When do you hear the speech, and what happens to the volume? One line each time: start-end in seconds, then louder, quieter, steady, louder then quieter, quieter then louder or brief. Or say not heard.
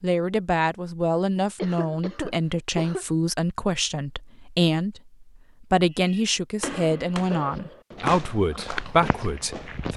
0.0-9.9 steady.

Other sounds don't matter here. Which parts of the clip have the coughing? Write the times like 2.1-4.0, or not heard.
1.6-3.0, 6.6-7.8.